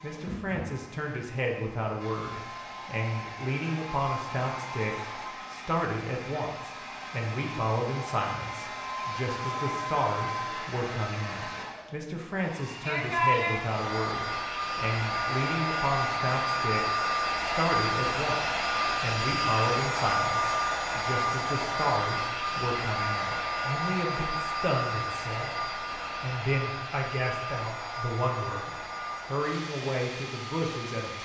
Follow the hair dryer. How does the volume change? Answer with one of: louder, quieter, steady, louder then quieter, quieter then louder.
louder then quieter.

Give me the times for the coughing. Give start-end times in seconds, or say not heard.
not heard.